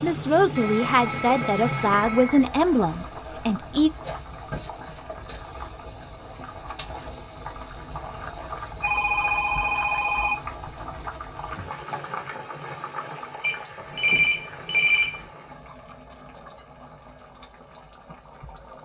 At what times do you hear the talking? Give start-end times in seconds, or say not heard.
0.0-3.9.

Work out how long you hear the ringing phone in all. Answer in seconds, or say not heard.
5 s.